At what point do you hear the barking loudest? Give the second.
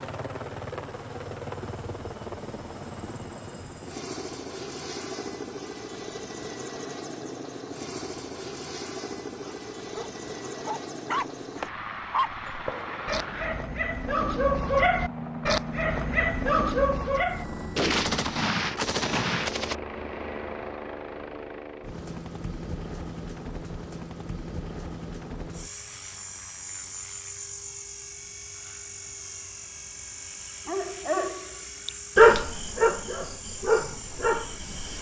32 s.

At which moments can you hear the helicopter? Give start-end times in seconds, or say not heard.
0.0-34.9.